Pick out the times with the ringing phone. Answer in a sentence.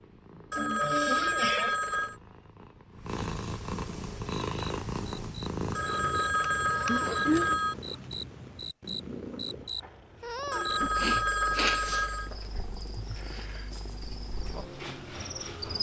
The ringing phone can be heard from 0.5 to 2.1 s, from 5.8 to 7.8 s and from 10.5 to 12.3 s.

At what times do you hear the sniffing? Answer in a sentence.
The sniffing can be heard from 0.6 to 1.8 s, from 6.8 to 7.5 s and from 10.9 to 11.8 s.